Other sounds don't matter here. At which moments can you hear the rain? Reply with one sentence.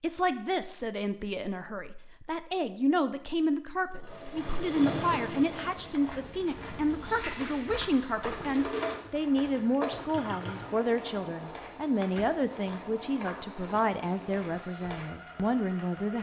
The rain can't be heard in this clip.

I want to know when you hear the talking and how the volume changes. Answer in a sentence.
The talking can be heard from 0.0 to 16.1 s, at a steady volume.